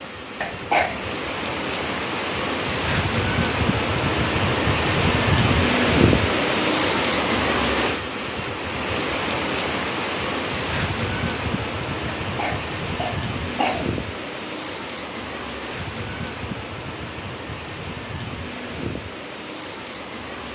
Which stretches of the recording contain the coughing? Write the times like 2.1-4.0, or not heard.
0.4-1.1, 12.2-13.9.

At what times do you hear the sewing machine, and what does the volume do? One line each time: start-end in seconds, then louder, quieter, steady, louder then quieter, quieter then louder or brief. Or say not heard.
not heard.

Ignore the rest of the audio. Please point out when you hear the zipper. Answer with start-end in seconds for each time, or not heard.
not heard.